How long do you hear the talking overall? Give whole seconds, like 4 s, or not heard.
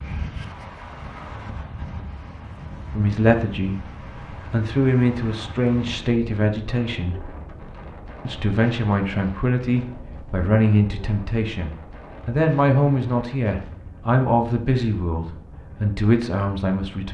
13 s.